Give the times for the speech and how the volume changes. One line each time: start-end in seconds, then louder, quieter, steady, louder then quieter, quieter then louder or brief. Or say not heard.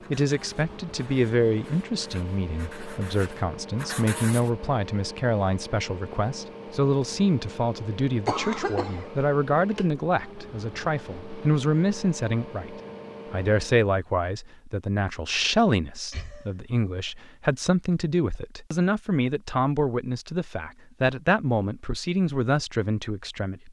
0.1-23.6 steady.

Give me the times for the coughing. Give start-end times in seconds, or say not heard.
8.2-9.1, 16.1-17.1, 17.9-18.4.